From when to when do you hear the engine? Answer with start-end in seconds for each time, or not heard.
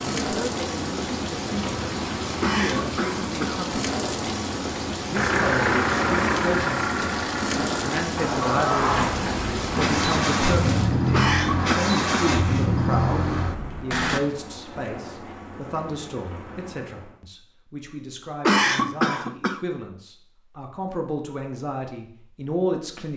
5.2-14.2.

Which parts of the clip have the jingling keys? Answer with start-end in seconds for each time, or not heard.
not heard.